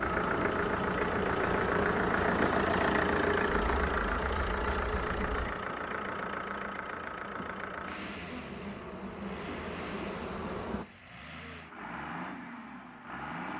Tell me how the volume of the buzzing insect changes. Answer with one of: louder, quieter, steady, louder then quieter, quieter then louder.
quieter then louder.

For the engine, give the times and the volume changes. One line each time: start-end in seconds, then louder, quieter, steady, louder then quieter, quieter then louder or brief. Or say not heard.
0.0-13.5 quieter.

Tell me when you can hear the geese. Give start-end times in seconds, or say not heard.
3.6-5.5.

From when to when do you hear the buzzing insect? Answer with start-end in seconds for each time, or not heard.
0.0-10.8.